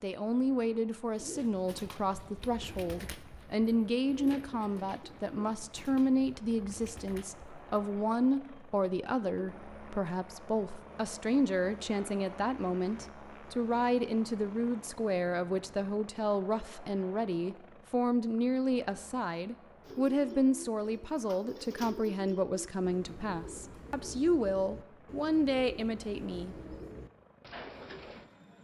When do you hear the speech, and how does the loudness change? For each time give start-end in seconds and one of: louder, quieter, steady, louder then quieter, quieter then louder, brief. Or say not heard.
0.0-26.6 steady.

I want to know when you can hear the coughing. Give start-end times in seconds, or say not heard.
not heard.